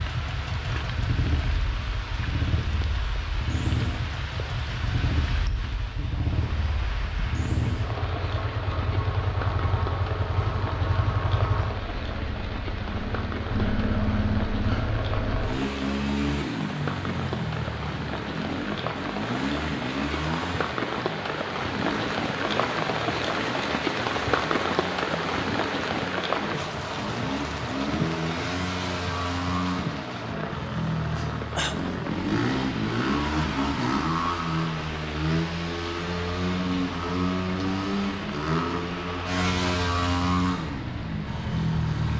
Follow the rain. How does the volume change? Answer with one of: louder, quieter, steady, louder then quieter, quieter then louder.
louder then quieter.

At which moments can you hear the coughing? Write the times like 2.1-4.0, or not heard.
31.1-31.8.